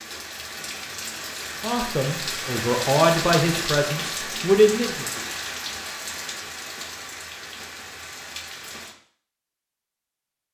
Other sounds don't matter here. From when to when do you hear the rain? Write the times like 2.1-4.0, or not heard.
0.0-8.9.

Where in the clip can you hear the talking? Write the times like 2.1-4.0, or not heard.
1.6-5.0.